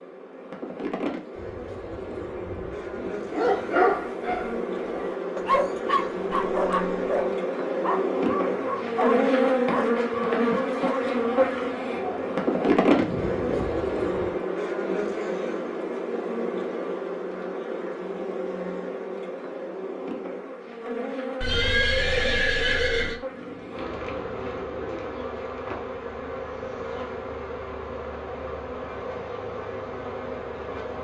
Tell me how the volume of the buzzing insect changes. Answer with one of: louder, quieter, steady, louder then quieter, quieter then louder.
louder then quieter.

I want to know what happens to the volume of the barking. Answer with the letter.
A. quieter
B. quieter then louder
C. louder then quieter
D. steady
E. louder
A.